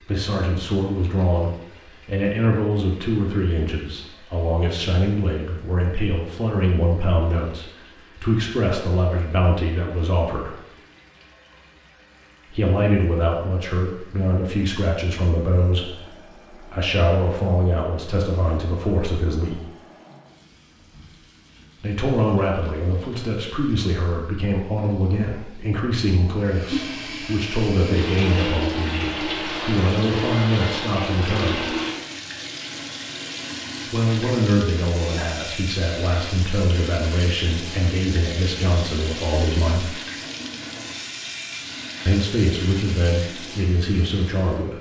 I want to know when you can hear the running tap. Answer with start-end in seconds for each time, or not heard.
0.0-44.7.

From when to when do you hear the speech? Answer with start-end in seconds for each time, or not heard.
0.1-10.6, 12.5-19.6, 21.8-31.6, 33.9-39.9, 42.0-44.7.